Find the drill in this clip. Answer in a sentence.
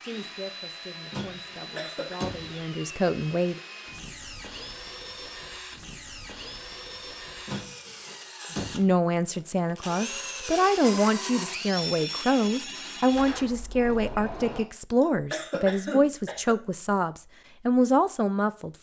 You can hear the drill from 0.0 to 13.4 s.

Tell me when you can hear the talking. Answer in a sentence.
The talking can be heard from 0.0 to 3.6 s and from 8.7 to 18.7 s.